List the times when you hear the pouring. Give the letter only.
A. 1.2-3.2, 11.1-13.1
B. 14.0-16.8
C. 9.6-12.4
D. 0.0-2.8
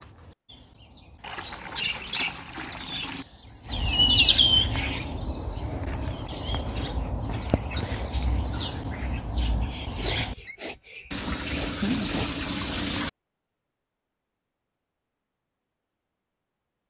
A.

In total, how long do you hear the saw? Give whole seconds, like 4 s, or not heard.
3 s.